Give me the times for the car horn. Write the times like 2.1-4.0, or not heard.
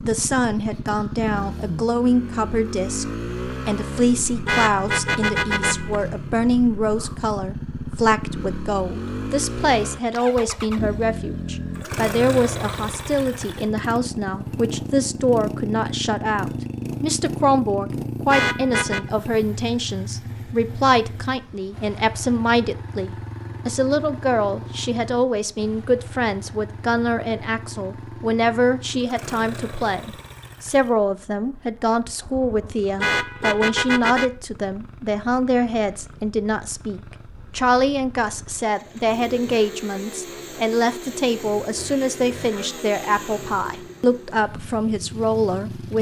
4.5-6.0, 18.3-19.1, 33.0-34.3.